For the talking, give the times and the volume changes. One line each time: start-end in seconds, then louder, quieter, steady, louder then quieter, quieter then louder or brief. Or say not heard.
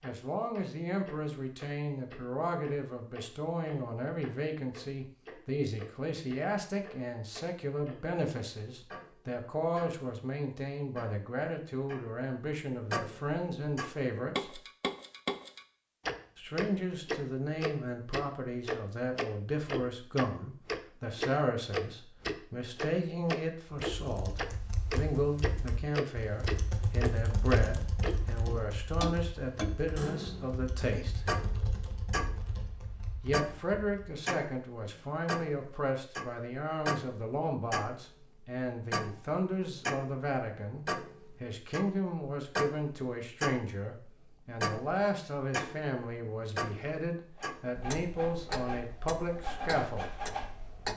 0.0-14.6 steady
16.4-31.2 steady
33.2-50.1 steady.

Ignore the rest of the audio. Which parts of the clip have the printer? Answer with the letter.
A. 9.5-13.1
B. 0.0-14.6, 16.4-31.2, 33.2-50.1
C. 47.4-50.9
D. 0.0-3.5
C.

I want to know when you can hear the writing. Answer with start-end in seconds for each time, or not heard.
not heard.